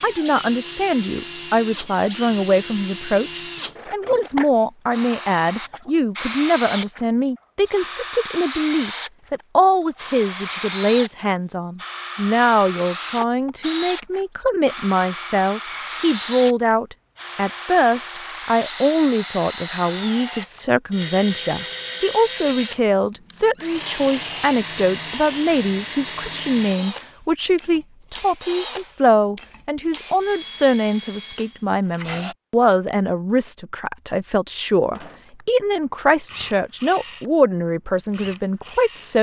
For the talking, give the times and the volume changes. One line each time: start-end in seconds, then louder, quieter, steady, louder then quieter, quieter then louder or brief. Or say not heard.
0.0-39.1 steady.